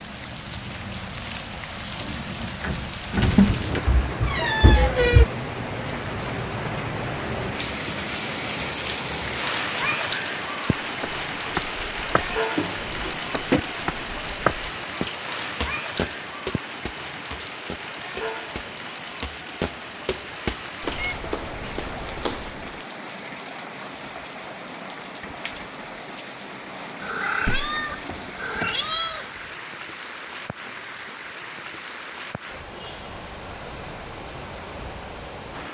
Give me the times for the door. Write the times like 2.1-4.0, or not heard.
2.6-4.0, 12.6-13.6, 27.4-28.8.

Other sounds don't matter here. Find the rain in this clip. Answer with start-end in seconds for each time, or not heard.
0.0-35.6.